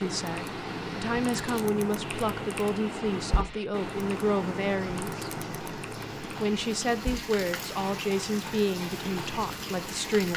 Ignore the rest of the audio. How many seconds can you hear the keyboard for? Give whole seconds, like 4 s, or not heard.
10 s.